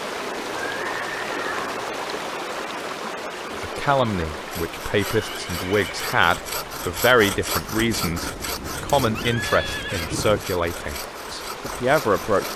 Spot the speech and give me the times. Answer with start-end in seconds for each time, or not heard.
3.5-12.5.